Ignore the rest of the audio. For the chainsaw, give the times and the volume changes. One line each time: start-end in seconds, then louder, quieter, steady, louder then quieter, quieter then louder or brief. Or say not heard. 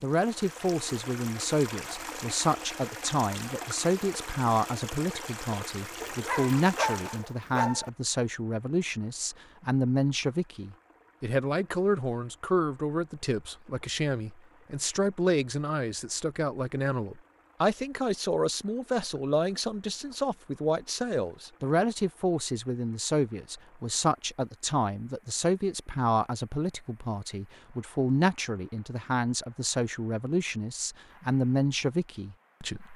not heard.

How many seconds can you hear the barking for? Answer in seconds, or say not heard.
2 s.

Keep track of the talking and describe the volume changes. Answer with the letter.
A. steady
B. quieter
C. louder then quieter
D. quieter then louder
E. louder
A.